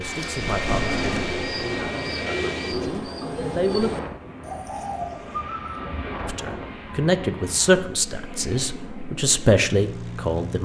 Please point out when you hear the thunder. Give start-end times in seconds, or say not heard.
0.4-1.9.